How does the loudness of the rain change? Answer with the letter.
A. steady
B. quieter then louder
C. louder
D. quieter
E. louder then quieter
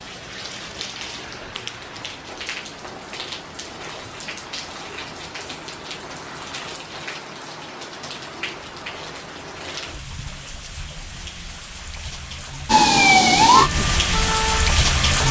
C.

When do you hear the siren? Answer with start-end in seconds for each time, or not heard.
12.7-15.2.